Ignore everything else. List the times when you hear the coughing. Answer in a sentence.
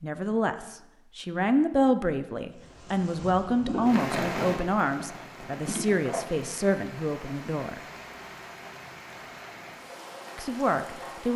The coughing can be heard from 5.7 to 6.3 s.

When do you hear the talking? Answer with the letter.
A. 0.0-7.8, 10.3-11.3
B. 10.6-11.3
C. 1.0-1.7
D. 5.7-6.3
A.